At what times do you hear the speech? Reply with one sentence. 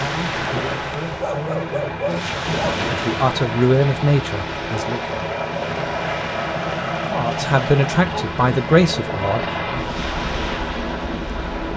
You can hear the speech from 0.0 to 5.2 s and from 7.0 to 9.9 s.